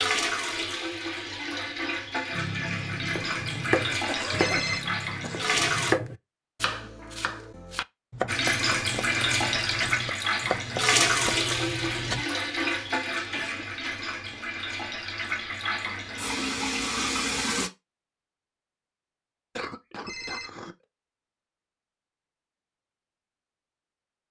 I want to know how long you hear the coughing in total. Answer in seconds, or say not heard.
4 s.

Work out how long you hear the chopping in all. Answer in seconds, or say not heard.
10 s.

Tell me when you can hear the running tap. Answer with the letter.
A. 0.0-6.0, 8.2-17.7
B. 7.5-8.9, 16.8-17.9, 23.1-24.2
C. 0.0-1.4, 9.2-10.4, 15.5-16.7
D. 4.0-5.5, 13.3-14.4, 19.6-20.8
A.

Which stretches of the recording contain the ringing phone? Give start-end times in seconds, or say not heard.
4.3-4.8, 20.1-20.5.